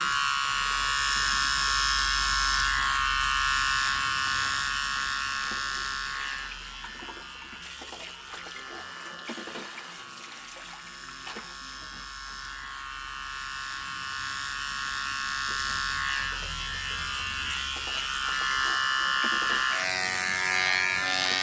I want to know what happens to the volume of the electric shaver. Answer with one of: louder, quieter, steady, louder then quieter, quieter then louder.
quieter then louder.